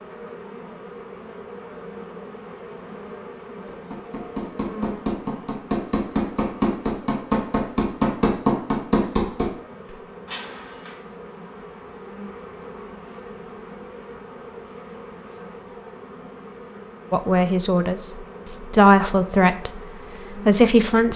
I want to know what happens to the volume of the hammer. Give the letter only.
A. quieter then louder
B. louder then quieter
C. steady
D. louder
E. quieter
B.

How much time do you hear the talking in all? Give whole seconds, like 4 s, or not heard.
4 s.